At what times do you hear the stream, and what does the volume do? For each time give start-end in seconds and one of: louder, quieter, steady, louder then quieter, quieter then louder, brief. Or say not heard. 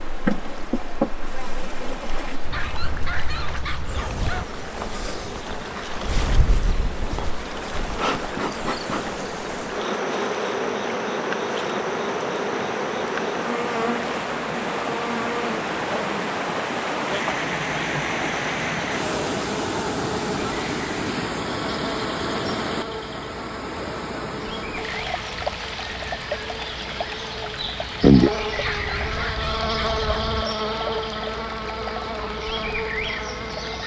0.0-33.8 louder then quieter.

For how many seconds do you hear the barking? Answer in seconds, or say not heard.
4 s.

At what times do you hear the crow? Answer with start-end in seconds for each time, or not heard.
not heard.